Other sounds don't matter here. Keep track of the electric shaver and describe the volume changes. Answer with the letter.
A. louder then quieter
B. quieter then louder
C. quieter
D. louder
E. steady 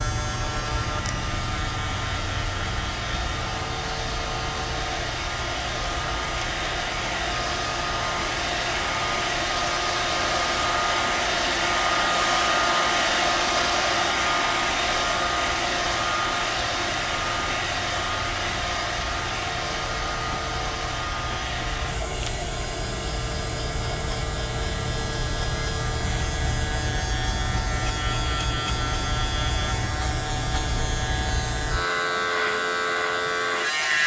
B.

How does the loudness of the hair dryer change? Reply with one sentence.
The volume of the hair dryer goes up, then down.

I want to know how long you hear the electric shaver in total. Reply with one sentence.
The electric shaver can be heard for 34 seconds in total.